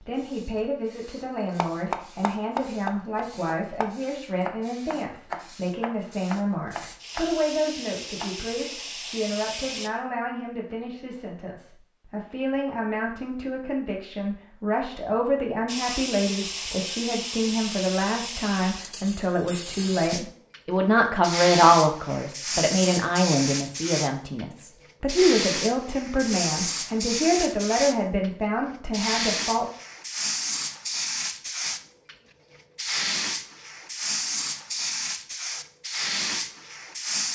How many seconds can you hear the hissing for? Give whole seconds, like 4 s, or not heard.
31 s.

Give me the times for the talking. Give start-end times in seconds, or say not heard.
0.0-29.7.